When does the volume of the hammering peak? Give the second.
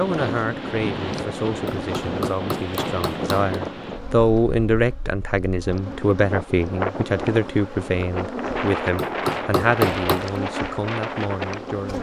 10 s.